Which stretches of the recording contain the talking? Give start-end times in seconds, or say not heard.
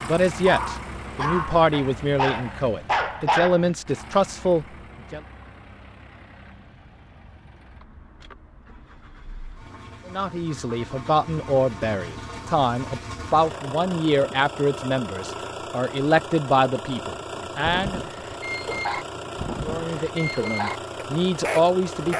0.0-5.2, 10.1-18.0, 19.6-22.1.